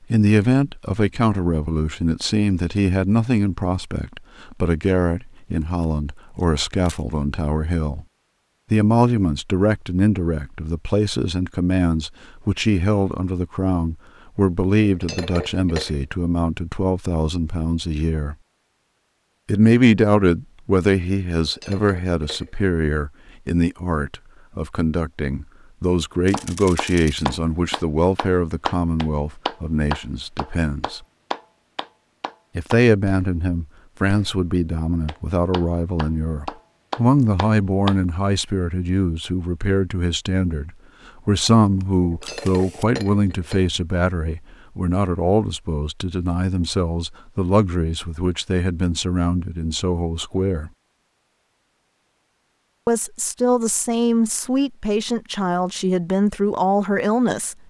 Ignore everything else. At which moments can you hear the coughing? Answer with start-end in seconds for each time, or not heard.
not heard.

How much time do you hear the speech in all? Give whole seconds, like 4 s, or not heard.
52 s.